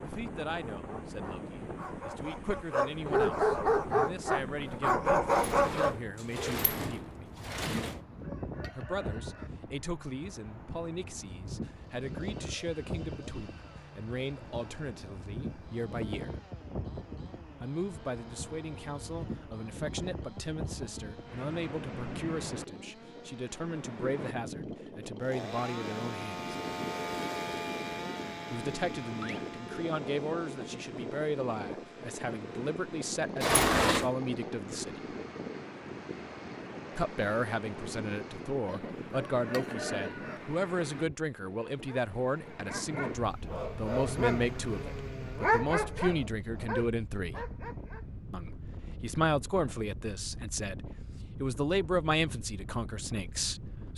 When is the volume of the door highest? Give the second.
34 s.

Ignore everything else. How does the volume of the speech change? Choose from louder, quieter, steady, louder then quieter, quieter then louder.
louder.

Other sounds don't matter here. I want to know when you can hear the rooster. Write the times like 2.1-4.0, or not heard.
8.0-9.5, 38.6-40.4.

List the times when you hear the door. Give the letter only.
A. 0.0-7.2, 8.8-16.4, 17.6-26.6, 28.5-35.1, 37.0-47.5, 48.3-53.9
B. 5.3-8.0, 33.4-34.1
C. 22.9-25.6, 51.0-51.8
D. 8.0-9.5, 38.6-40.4
B.